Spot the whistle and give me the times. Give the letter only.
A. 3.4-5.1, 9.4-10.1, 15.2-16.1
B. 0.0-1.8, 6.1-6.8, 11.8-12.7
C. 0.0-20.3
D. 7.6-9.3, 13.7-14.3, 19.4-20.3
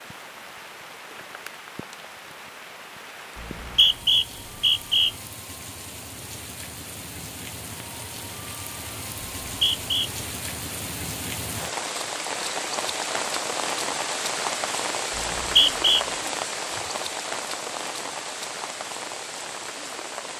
A.